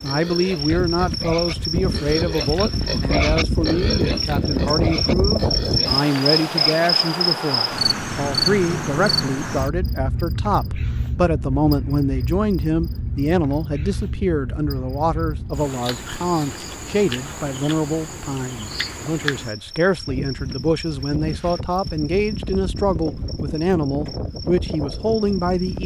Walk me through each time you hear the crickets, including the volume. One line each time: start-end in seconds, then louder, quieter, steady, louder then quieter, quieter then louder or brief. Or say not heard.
0.0-25.8 quieter.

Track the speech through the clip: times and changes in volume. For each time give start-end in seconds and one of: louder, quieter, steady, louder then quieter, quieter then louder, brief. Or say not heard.
0.0-25.8 steady.